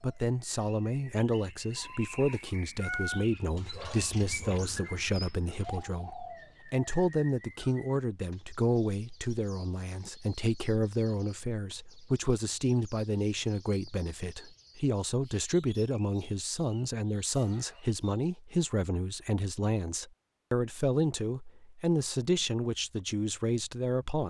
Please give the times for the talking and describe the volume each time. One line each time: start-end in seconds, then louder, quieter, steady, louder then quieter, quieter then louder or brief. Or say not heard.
0.0-24.2 steady.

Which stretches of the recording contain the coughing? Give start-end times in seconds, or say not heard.
not heard.